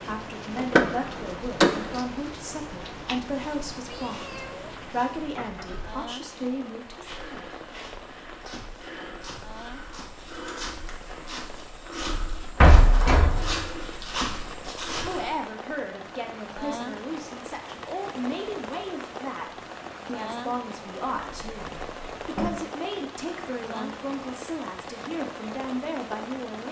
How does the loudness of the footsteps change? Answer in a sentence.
The volume of the footsteps goes up.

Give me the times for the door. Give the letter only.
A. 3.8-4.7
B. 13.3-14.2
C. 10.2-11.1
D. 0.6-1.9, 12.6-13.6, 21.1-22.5
D.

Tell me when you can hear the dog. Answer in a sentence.
The dog can't be heard in this clip.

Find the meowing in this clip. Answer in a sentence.
You can hear the meowing from 3.8 to 4.7 s.